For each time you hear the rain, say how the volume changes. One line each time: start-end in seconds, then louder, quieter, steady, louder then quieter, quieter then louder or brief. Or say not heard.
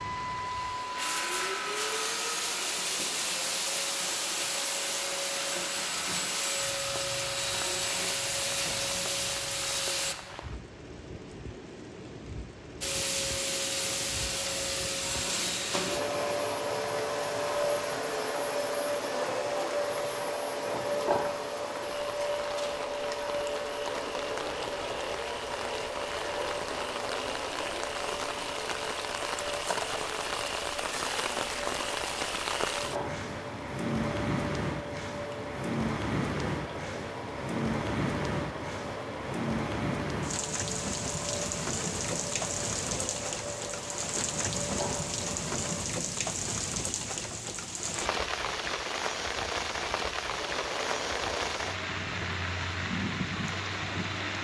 0.0-54.3 louder.